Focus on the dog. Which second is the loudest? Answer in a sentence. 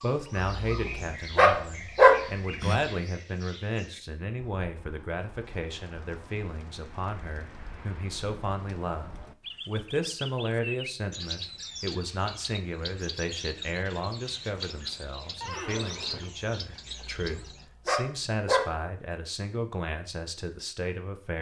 The volume of the dog peaks at 2 seconds.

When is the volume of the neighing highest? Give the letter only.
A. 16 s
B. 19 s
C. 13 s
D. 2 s
A.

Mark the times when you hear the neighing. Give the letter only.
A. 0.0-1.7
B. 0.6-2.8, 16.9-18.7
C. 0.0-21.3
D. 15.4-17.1
D.